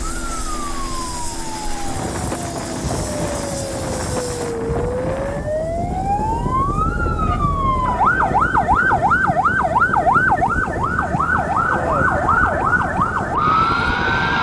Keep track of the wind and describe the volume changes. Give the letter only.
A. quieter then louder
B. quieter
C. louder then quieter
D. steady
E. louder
D.